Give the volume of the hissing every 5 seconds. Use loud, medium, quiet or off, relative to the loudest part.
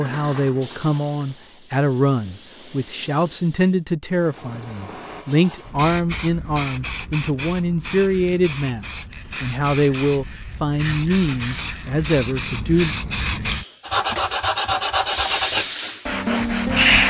quiet, quiet, medium, loud.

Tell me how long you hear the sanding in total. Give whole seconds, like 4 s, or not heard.
3 s.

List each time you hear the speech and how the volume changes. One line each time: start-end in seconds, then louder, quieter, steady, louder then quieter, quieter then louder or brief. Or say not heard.
0.0-12.9 steady.